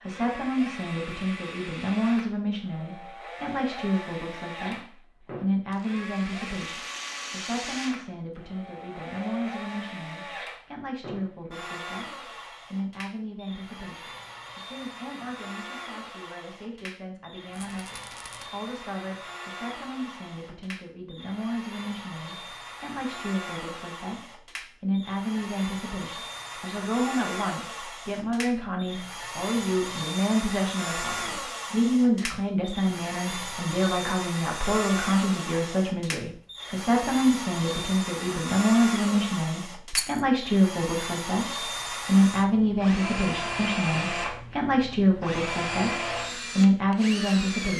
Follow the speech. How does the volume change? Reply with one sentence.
The loudness of the speech goes down, then up.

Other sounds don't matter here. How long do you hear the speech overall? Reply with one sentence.
The speech can be heard for 48 seconds in total.